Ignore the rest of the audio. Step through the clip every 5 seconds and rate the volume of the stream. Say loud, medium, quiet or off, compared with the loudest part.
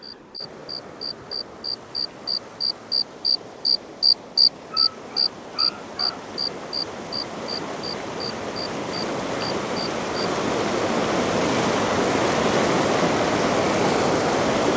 quiet, medium, loud.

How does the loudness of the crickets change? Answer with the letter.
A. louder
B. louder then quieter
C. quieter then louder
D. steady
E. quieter
B.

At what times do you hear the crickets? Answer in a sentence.
The crickets can be heard from 0.0 to 10.2 s.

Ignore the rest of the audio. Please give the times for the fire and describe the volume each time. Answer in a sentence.
The fire can't be heard in this clip.